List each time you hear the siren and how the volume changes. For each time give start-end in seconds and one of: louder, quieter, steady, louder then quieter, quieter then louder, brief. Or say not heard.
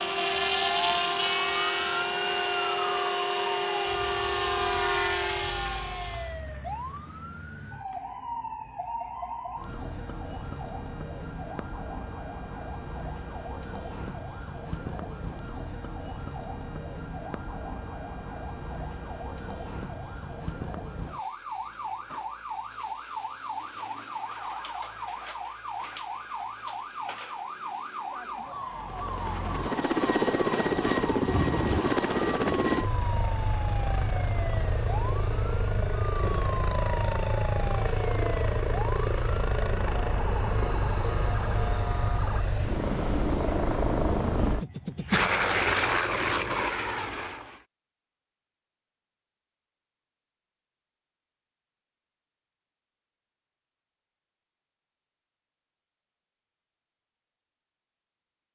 0.0-42.5 steady.